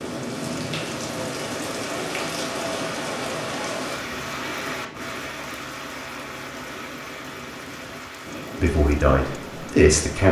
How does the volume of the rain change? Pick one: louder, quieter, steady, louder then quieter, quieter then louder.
quieter.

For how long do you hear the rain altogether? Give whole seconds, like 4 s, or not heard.
10 s.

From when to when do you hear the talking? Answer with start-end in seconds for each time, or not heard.
8.6-10.2.